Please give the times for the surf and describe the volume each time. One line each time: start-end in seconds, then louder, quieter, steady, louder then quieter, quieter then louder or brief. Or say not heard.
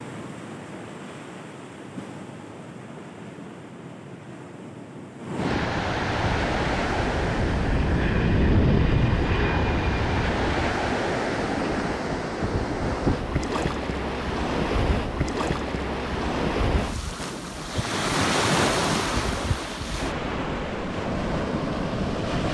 0.0-22.4 louder.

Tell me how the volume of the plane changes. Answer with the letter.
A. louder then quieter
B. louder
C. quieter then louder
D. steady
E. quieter
A.